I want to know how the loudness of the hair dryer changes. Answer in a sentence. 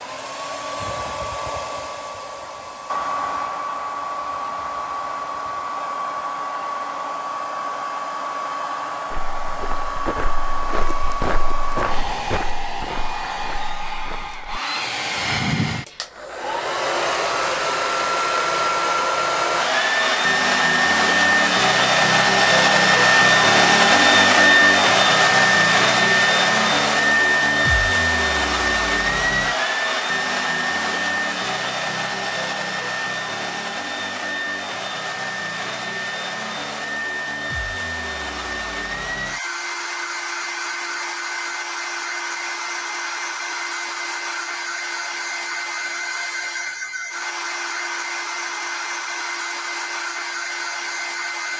The volume of the hair dryer goes up, then down.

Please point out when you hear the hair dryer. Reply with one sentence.
You can hear the hair dryer from 0.0 to 51.5 s.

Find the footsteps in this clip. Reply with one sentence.
The footsteps can be heard from 9.1 to 14.6 s.